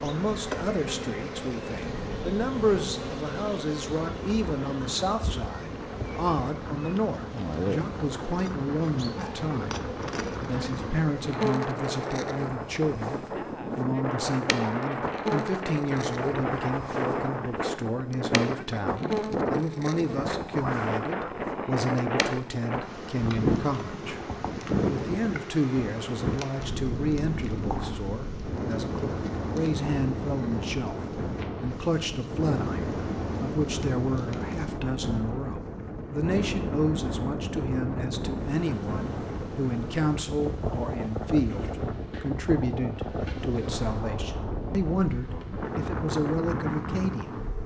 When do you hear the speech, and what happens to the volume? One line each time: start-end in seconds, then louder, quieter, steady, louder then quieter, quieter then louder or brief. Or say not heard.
0.0-47.6 steady.